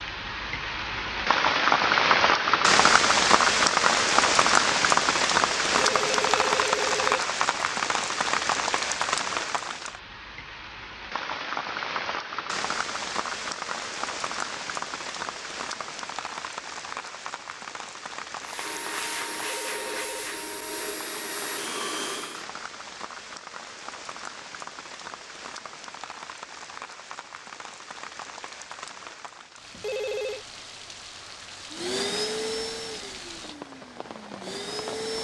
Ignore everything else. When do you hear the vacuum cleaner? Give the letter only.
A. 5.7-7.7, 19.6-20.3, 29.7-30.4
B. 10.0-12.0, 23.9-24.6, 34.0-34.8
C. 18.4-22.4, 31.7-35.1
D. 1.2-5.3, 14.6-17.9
C.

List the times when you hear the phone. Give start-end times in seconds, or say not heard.
5.7-7.7, 19.6-20.3, 29.7-30.4.